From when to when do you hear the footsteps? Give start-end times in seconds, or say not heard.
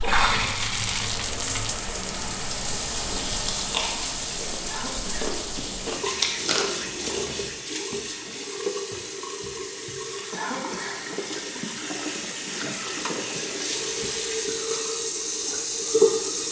not heard.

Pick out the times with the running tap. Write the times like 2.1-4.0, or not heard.
0.0-16.4.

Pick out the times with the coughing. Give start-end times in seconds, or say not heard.
4.7-5.3, 10.3-11.2.